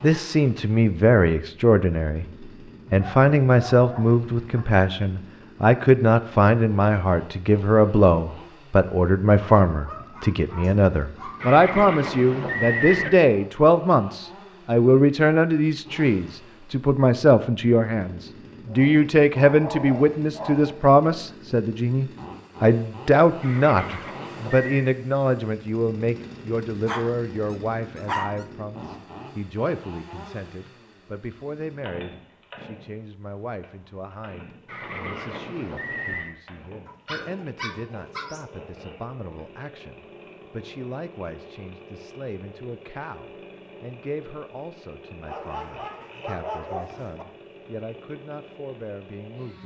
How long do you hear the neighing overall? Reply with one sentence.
You can hear the neighing for 5 seconds altogether.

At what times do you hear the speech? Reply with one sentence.
You can hear the speech from 0.0 to 49.6 s.